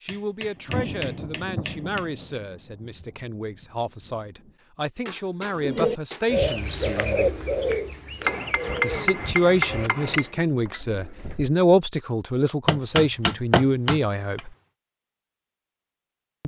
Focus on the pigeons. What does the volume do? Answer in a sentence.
The volume of the pigeons goes down.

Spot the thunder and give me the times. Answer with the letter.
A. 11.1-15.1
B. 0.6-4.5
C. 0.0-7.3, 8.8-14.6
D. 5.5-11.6
B.